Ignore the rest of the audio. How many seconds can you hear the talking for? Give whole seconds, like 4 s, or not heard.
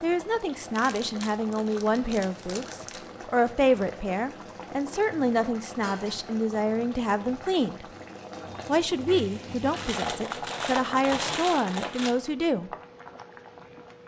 12 s.